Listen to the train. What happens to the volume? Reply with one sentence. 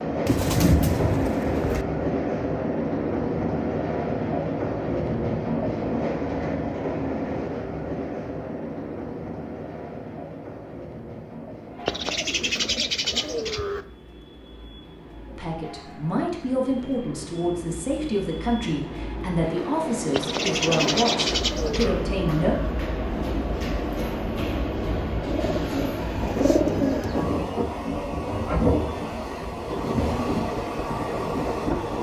The loudness of the train goes down, then up.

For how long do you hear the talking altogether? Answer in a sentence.
You can hear the talking for 7 seconds altogether.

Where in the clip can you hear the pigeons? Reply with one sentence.
You can hear the pigeons from 0.2 to 1.9 s, from 11.8 to 13.8 s, from 20.1 to 22.1 s and from 25.3 to 27.2 s.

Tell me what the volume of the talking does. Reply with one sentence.
The loudness of the talking stays about the same.